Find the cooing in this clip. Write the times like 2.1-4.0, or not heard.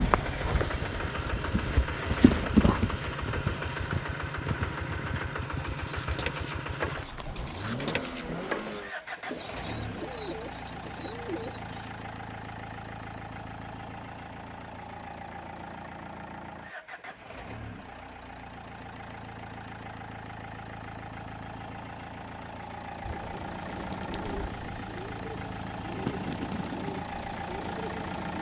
5.5-11.9, 23.0-28.3.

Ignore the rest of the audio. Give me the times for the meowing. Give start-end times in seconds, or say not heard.
not heard.